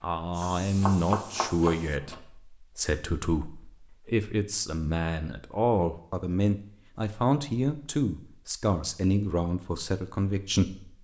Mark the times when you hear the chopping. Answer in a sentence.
The chopping can be heard from 0.6 to 2.2 s.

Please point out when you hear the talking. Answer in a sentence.
The talking can be heard from 0.0 to 10.9 s.